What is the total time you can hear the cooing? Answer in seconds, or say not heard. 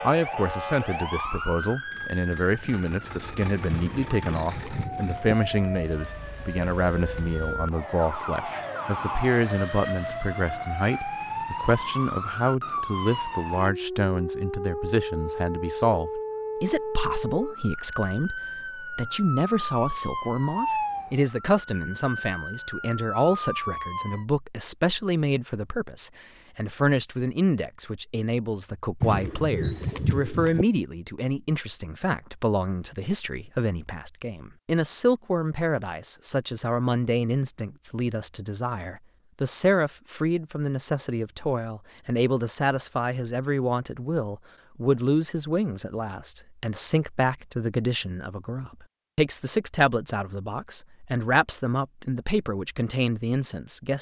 3 s.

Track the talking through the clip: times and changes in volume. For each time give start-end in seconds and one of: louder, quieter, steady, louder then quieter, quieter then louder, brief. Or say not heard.
0.0-53.9 steady.